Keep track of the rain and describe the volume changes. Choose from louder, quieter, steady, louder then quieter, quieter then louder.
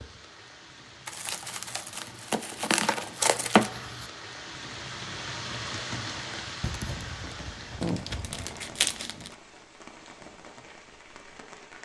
louder then quieter.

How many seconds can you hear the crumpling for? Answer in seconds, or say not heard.
4 s.